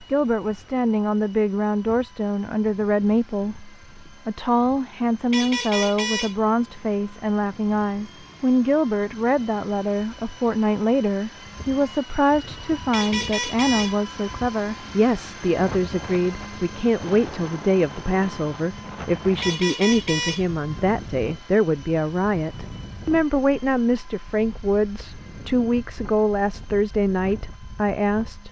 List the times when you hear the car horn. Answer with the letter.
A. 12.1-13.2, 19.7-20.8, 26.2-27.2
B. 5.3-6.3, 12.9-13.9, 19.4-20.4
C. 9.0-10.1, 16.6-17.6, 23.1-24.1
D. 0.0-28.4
B.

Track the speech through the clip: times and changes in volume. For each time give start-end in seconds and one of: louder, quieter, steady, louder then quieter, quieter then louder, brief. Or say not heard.
0.0-28.4 steady.